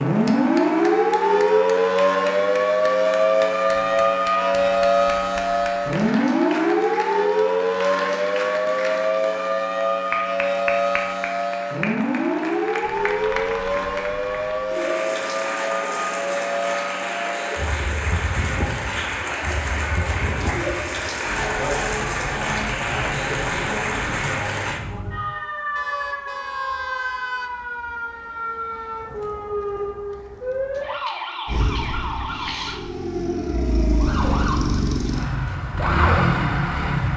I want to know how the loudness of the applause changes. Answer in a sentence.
The loudness of the applause goes up.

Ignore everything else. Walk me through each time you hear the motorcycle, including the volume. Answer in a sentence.
The motorcycle can be heard from 31.4 to 37.1 s, getting louder.